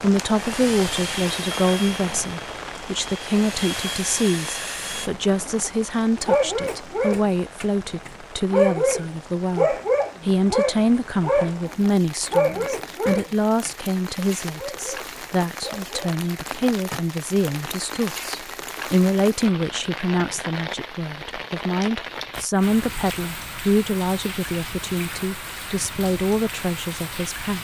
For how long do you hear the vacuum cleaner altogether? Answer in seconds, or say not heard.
5 s.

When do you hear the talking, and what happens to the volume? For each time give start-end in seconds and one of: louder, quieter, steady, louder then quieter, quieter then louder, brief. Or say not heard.
0.0-27.5 steady.